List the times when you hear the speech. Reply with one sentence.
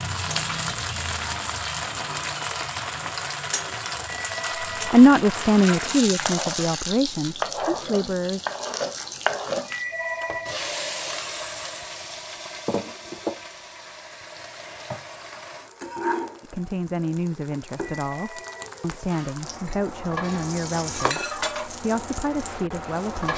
The speech can be heard from 4.8 to 8.4 s and from 16.4 to 23.3 s.